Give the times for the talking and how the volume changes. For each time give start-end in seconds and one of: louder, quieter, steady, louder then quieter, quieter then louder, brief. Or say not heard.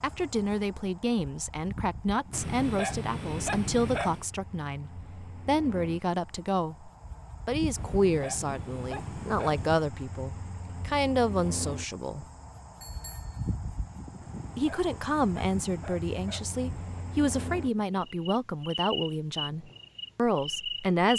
0.0-12.2 steady
14.6-21.1 steady.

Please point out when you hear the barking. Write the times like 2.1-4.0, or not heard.
2.3-4.2, 7.8-9.8, 14.2-17.1.